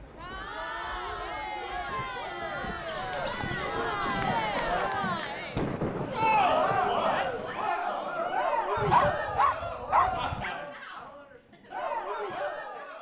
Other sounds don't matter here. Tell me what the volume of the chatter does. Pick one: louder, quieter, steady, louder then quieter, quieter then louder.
louder then quieter.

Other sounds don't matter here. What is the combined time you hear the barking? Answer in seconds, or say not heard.
4 s.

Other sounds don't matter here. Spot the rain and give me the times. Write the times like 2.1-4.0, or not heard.
0.0-7.7.